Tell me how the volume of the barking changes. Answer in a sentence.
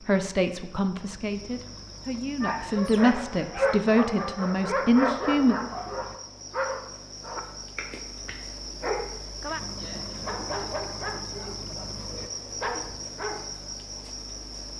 The volume of the barking goes down.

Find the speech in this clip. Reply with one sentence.
The speech can be heard from 0.0 to 5.5 s.